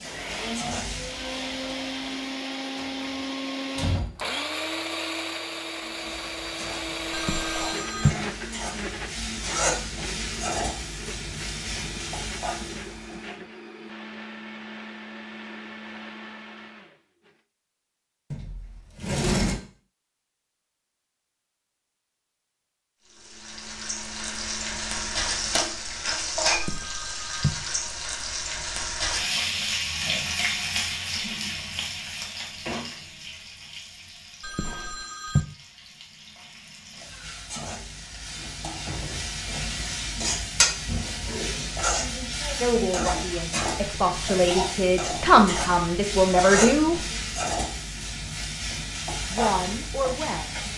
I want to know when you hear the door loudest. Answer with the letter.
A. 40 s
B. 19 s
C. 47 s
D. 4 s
B.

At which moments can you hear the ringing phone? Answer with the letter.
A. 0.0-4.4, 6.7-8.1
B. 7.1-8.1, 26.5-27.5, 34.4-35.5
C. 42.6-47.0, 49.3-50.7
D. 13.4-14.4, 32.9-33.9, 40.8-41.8
B.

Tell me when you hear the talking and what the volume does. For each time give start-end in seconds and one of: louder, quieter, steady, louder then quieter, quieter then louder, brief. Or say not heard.
42.6-47.0 louder
49.3-50.7 brief.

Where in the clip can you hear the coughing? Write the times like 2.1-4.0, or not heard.
not heard.